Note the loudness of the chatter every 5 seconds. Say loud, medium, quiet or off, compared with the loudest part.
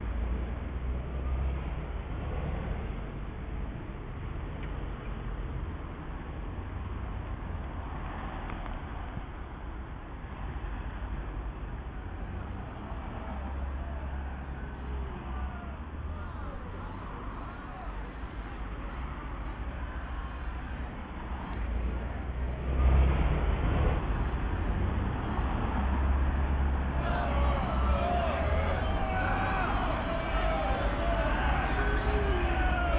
off, off, quiet, quiet, quiet, loud, loud.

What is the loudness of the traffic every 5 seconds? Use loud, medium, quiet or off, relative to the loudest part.
medium, medium, medium, medium, loud, loud, loud.